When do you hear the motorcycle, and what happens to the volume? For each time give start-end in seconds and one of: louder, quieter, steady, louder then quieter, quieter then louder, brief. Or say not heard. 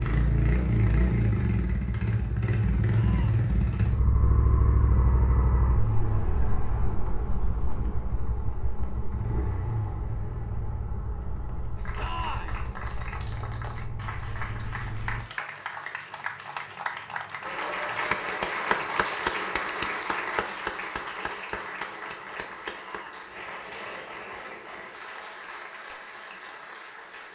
0.0-15.3 quieter.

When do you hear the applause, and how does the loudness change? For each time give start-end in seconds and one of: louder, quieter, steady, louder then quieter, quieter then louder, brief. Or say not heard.
11.8-27.3 louder then quieter.